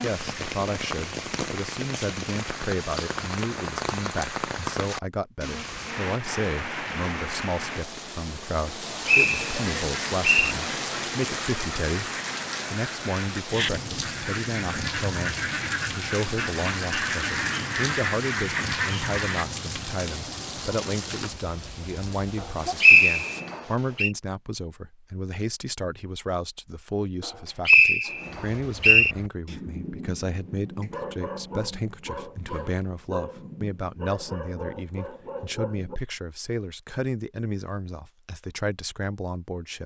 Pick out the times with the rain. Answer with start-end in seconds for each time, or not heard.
0.0-23.4.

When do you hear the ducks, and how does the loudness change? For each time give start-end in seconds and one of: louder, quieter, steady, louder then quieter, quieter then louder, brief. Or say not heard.
9.6-19.4 louder.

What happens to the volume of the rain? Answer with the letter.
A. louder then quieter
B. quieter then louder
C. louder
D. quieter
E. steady
E.